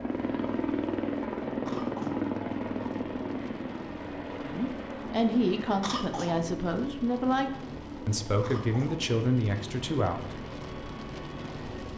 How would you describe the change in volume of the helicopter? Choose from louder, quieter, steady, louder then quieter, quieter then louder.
quieter.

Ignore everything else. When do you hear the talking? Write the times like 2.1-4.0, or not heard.
4.4-10.3.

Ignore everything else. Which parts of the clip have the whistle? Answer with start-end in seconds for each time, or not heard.
not heard.